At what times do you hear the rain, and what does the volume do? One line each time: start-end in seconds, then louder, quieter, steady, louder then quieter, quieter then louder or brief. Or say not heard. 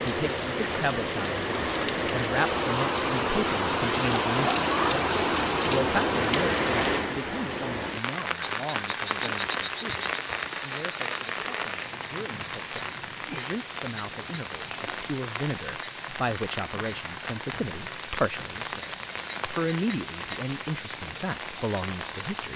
0.0-22.5 quieter.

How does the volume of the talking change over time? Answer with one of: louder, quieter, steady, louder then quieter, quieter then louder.
quieter then louder.